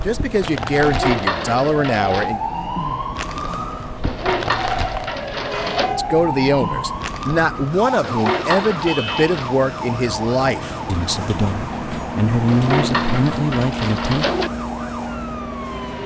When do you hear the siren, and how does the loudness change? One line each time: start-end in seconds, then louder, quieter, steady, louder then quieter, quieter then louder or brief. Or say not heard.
0.0-16.0 quieter.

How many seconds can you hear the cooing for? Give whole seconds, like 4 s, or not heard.
7 s.